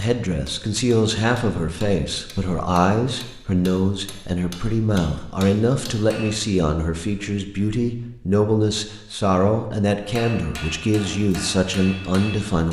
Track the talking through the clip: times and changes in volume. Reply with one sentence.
You can hear the talking from 0.0 to 12.6 s, at a steady volume.